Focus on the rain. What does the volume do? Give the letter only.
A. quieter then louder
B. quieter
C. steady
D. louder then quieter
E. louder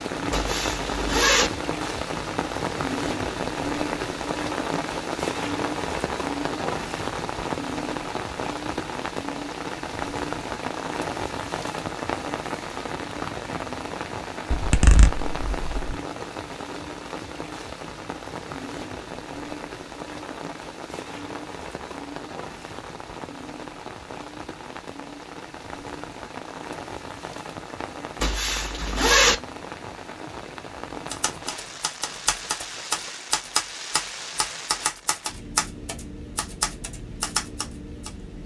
B.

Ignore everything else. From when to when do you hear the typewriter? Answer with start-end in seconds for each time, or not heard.
31.1-38.1.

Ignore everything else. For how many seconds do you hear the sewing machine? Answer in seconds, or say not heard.
not heard.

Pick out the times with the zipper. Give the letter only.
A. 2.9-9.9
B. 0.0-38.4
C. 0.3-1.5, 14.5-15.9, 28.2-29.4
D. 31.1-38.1
C.